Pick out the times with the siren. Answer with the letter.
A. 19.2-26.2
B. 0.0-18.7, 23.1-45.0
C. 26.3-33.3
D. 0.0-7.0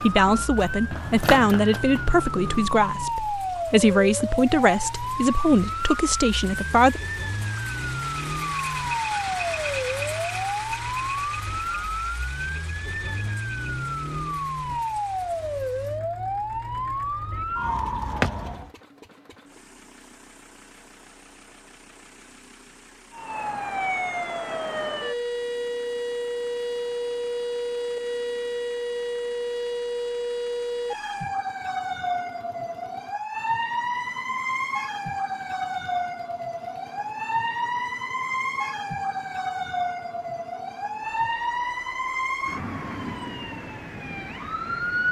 B.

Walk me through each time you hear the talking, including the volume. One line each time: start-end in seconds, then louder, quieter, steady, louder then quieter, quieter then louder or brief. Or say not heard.
0.0-7.0 steady.